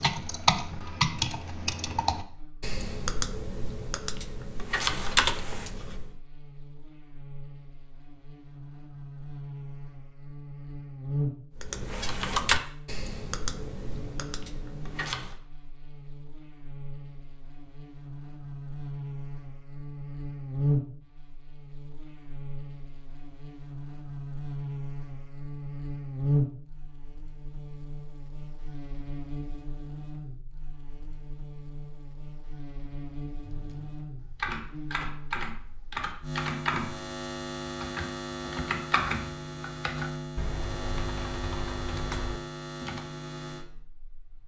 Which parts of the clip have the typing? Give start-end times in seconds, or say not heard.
0.0-6.2, 11.6-15.3, 33.5-43.0.